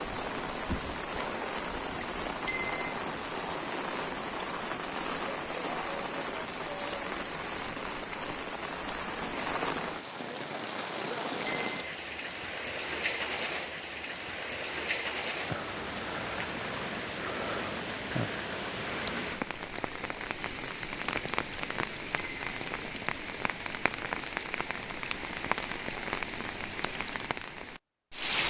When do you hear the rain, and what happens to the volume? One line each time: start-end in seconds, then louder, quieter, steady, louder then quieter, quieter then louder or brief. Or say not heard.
0.0-28.4 steady.